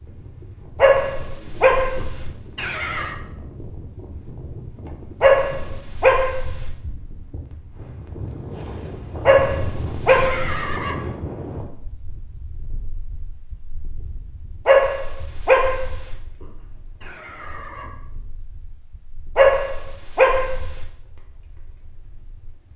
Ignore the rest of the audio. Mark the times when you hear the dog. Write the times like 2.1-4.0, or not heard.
0.8-2.3, 5.2-6.7, 9.2-10.8, 14.7-16.1, 19.4-20.9.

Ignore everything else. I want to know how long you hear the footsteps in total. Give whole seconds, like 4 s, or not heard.
not heard.